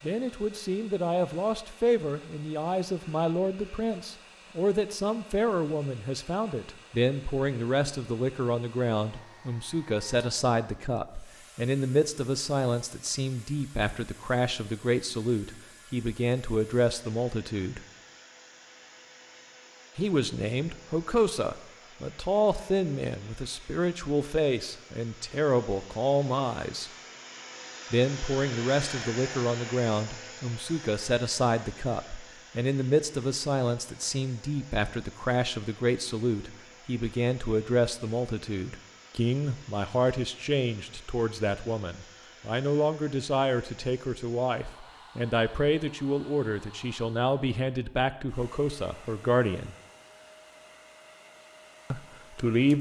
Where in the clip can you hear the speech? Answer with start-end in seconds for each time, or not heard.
0.0-17.8, 19.9-26.9, 27.9-49.8, 51.9-52.7.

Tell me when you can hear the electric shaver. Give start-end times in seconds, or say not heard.
not heard.